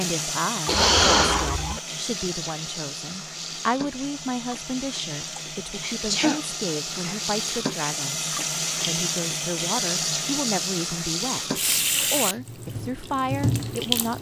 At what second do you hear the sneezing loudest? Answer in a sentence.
The volume of the sneezing peaks at 1 second.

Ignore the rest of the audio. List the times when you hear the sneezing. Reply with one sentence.
You can hear the sneezing from 0.7 to 1.8 s, from 5.2 to 7.2 s and from 11.5 to 12.3 s.